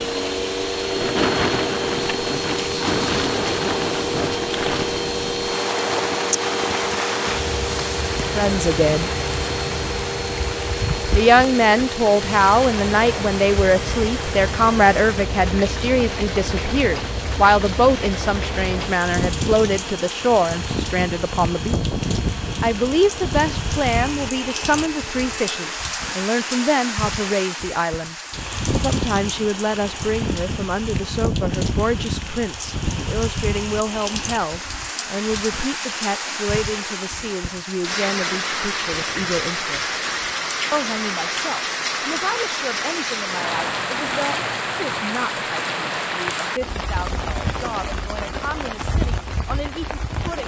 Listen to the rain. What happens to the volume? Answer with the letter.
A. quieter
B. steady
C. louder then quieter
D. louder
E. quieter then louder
B.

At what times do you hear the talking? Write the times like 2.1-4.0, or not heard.
8.3-9.1, 11.1-21.8, 22.6-28.1, 28.8-40.0, 40.7-50.4.